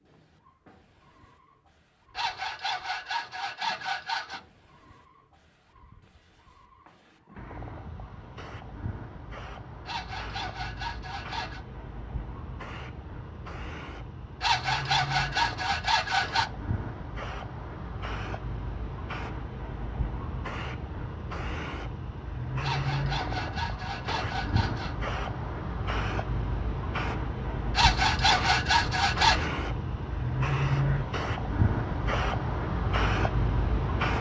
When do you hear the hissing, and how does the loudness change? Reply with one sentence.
The hissing can be heard from 0.0 to 34.1 s, getting louder.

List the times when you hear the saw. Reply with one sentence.
The saw can be heard from 2.1 to 4.4 s, from 9.8 to 11.6 s, from 14.4 to 16.5 s, from 22.6 to 24.9 s and from 27.8 to 29.5 s.